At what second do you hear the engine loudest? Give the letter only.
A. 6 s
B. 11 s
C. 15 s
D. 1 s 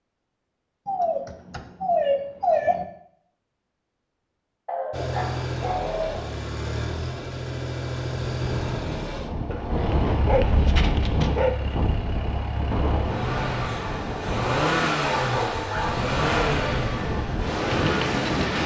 C.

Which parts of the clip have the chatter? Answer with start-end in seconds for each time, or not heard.
not heard.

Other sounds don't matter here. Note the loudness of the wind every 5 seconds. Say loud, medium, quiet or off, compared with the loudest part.
off, loud, loud, loud.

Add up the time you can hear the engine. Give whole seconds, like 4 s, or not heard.
14 s.